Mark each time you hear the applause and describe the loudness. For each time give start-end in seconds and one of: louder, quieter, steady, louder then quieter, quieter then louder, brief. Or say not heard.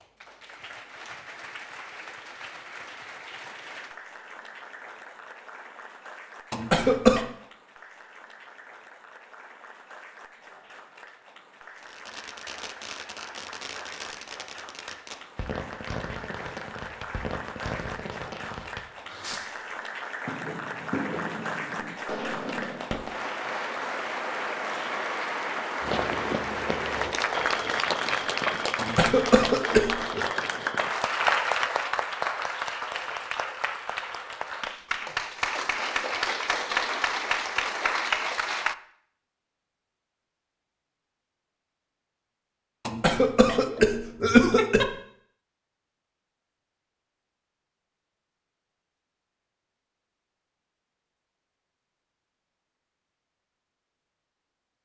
0.0-38.8 louder.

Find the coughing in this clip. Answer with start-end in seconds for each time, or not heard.
6.5-7.2, 28.8-30.2, 42.9-44.9.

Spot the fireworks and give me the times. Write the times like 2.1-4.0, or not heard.
11.8-23.3.